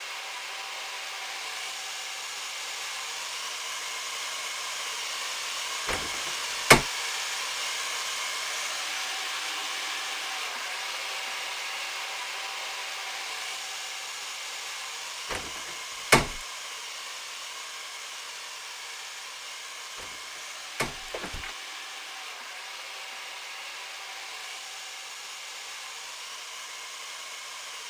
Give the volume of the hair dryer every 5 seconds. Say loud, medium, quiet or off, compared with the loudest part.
loud, loud, loud, medium, medium, medium.